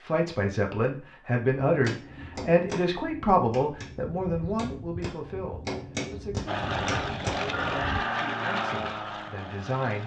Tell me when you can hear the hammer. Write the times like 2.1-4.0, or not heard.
1.6-8.0.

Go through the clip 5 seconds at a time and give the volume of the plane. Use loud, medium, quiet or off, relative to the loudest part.
off, loud.